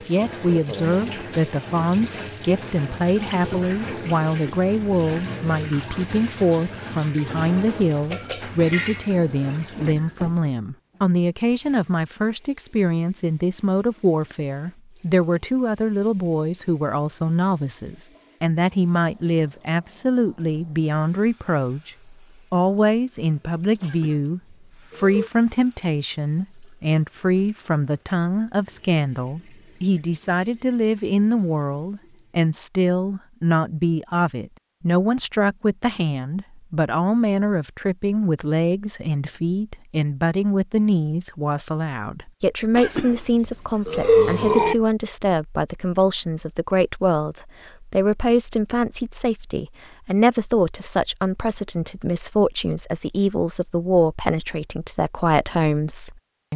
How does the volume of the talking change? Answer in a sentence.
The volume of the talking stays about the same.